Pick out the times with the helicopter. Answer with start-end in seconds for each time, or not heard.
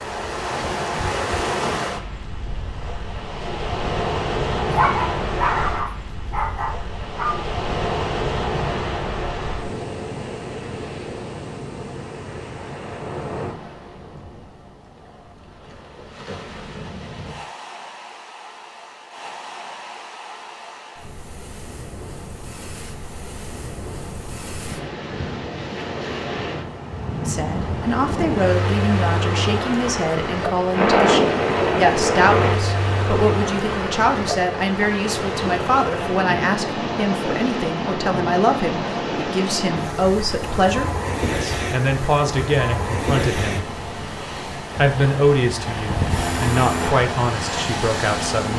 30.7-32.6, 45.9-48.5.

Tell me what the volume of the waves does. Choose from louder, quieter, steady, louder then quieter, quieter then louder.
quieter then louder.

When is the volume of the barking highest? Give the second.
5 s.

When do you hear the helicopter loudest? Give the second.
31 s.